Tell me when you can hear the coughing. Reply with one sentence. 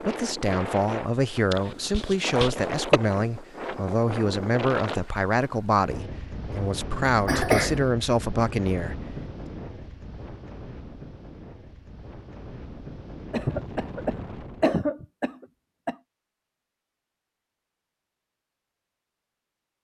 You can hear the coughing from 1.5 to 3.0 s, from 7.2 to 7.9 s and from 13.3 to 15.9 s.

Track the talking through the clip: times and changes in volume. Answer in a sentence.
You can hear the talking from 0.0 to 9.0 s, at a steady volume.